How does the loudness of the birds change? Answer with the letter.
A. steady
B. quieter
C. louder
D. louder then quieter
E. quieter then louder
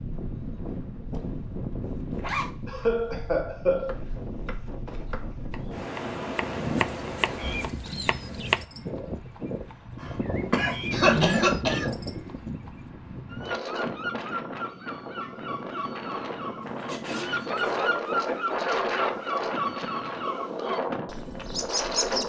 C.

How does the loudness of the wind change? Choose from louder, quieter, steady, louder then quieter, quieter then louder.
louder.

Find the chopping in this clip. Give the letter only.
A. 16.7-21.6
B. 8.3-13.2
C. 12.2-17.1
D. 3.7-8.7
D.